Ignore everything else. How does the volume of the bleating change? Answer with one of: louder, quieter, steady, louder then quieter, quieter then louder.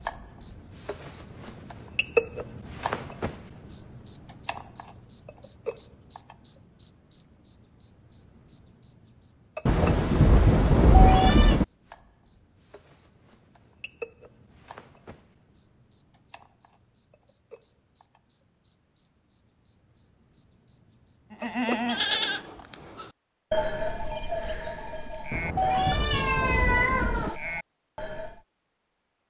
quieter.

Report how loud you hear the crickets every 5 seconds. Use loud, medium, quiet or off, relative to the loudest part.
loud, loud, quiet, quiet, medium, off.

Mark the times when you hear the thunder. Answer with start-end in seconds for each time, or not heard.
9.7-11.7, 25.3-27.3.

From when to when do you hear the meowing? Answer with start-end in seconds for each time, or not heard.
10.9-11.6, 25.6-27.4.